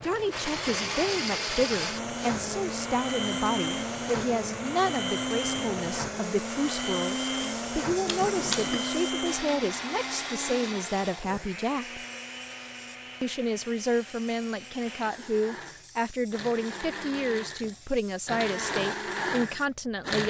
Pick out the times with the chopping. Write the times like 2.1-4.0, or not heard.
not heard.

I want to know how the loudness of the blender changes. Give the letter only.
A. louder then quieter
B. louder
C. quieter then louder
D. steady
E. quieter
C.